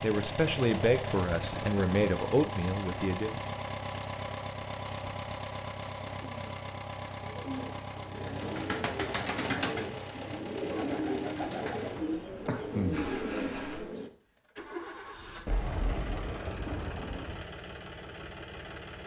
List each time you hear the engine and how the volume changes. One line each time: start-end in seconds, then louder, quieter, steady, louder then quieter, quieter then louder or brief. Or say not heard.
0.0-19.0 quieter.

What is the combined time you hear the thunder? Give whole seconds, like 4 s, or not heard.
2 s.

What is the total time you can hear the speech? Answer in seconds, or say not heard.
3 s.